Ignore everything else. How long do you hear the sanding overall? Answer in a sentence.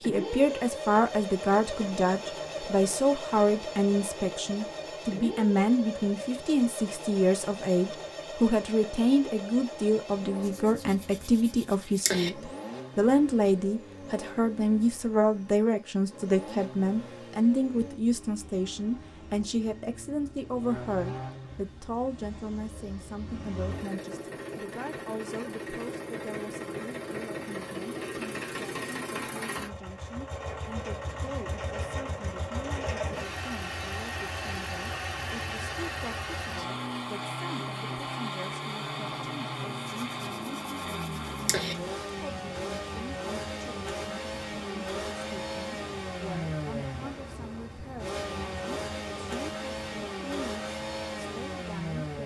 You can hear the sanding for 4 seconds altogether.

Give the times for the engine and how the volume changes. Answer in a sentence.
You can hear the engine from 0.0 to 52.2 s, getting quieter then louder.